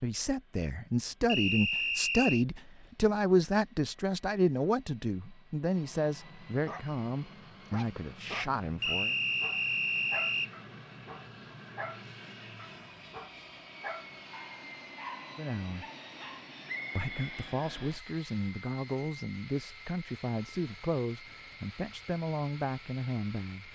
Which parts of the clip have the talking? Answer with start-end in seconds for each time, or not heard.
0.0-9.2, 15.3-15.8, 16.9-23.7.